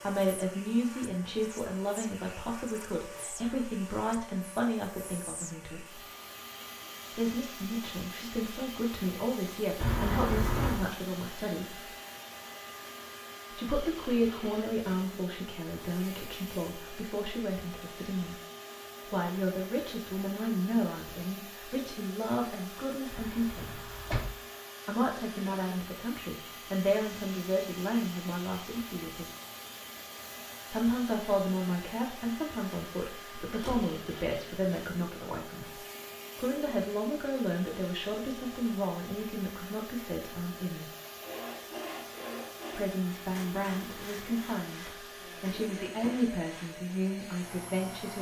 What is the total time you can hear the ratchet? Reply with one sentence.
You can't hear the ratchet here.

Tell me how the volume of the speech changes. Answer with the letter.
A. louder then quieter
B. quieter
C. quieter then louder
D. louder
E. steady
E.